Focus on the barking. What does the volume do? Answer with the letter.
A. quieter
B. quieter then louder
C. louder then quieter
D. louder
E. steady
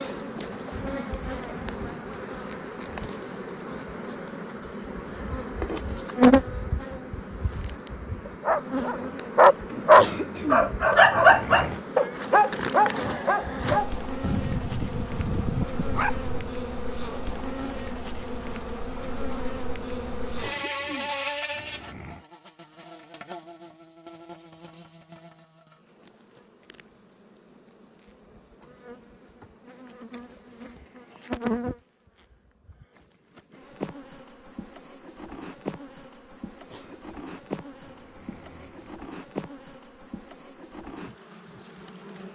A.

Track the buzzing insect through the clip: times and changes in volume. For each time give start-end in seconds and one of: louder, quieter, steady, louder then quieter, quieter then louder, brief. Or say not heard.
0.0-42.2 quieter.